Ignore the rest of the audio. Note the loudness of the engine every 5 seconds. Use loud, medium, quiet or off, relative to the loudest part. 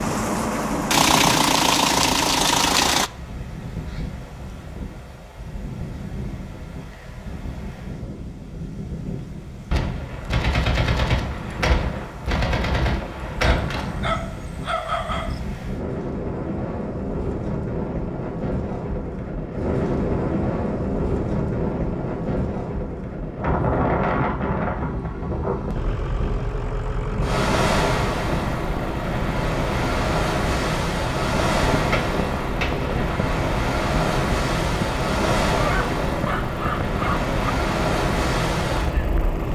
loud, off, off, off, off, medium, medium, medium.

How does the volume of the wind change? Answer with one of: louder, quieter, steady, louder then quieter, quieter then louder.
louder.